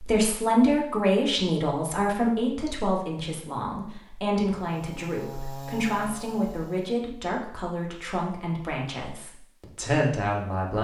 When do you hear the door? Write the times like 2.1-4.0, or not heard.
not heard.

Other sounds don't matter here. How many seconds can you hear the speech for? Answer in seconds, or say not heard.
11 s.